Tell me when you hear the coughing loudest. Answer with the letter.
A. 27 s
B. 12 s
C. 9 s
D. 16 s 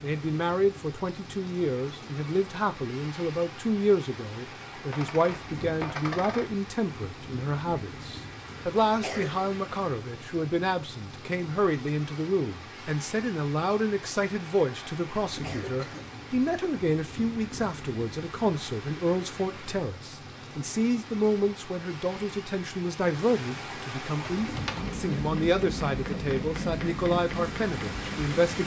C.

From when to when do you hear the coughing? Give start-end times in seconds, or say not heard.
9.0-9.4, 15.4-16.1.